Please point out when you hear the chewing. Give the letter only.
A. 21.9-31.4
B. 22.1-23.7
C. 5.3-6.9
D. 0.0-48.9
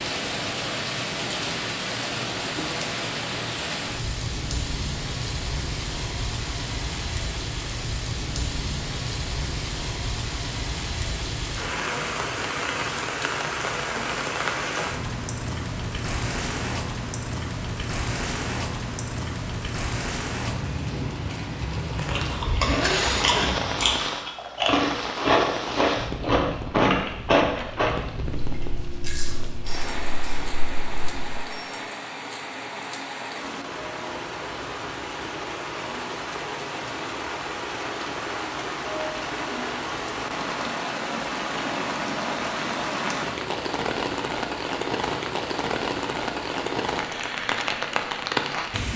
A.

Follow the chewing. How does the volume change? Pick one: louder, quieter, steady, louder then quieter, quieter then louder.
louder then quieter.